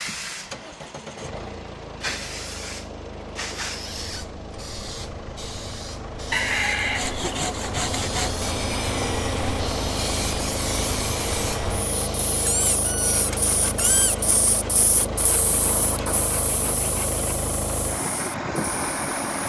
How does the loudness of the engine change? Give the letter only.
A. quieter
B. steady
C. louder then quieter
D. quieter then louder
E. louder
E.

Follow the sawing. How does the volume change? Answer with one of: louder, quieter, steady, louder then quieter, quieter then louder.
quieter.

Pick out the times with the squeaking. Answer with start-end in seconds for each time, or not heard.
3.6-4.2, 12.3-14.2.